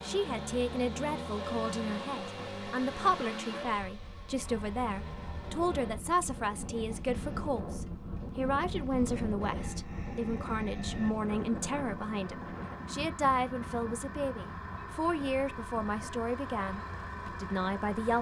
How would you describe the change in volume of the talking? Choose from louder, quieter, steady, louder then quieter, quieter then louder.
steady.